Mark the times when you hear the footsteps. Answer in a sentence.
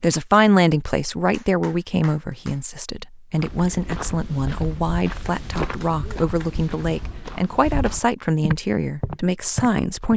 You can hear the footsteps from 3.4 to 10.1 s.